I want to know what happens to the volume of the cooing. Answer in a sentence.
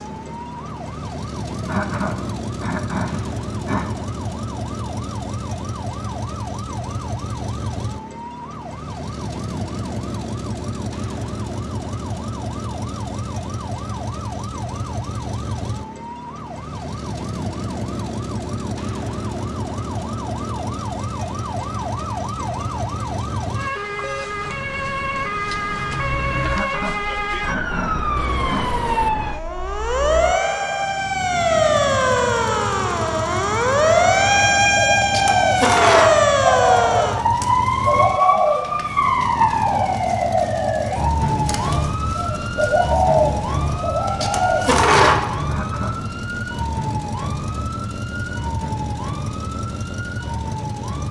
The loudness of the cooing goes down, then up.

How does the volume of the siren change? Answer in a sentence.
The volume of the siren goes up, then down.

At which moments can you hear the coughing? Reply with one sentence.
You can hear the coughing from 1.6 to 4.0 s, from 26.4 to 28.8 s and from 45.4 to 46.1 s.